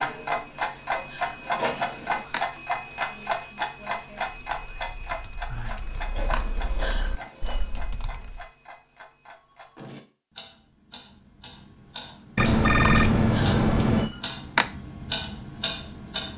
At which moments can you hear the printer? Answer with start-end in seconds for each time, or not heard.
0.1-2.2, 5.8-8.0.